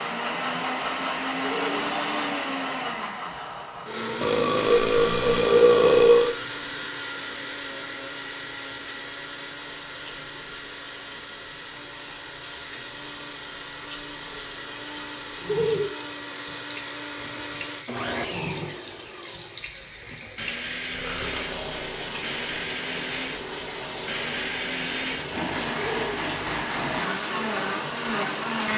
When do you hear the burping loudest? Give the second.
6 s.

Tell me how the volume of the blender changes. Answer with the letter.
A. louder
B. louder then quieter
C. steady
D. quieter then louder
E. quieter
D.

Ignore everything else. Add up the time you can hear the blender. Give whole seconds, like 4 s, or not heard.
29 s.